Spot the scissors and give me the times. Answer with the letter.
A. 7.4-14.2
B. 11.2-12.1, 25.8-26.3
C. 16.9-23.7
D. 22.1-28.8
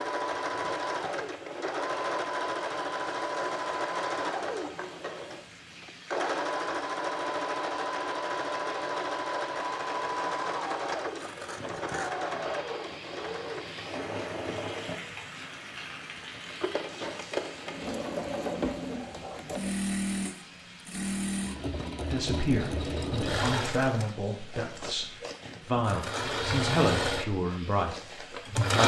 B.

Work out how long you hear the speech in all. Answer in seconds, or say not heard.
7 s.